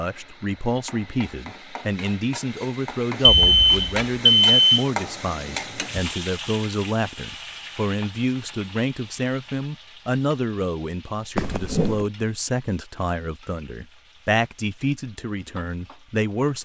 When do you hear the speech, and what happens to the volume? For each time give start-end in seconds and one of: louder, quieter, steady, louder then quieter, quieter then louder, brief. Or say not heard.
0.0-16.6 steady.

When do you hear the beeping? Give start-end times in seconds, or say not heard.
3.2-4.8, 11.3-12.1.